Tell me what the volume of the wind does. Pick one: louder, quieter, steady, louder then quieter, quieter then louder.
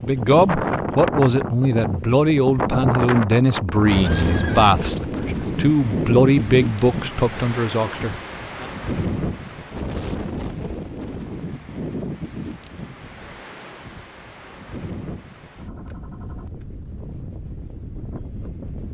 quieter.